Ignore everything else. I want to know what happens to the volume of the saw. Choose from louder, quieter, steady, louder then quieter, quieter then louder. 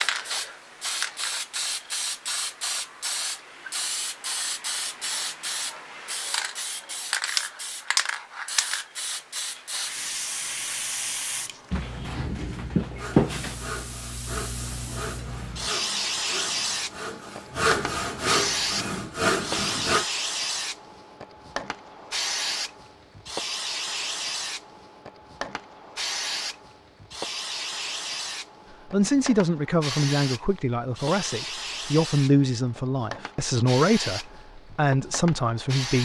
louder.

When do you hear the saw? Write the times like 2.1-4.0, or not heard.
12.9-20.1.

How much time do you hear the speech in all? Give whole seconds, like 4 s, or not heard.
7 s.